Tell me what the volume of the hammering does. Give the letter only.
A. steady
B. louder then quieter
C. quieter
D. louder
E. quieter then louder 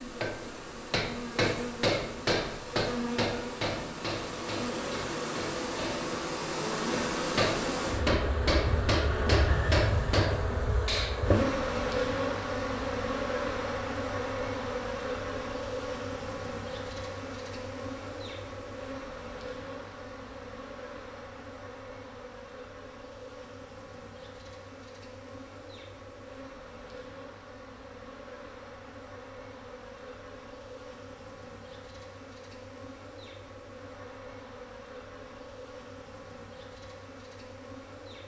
E.